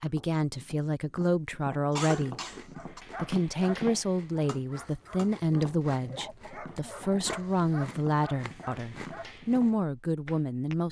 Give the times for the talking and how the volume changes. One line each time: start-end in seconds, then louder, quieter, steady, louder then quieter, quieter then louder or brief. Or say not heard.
0.0-2.4 brief
3.1-10.8 steady.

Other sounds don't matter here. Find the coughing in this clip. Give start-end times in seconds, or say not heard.
1.9-3.0, 6.2-7.2.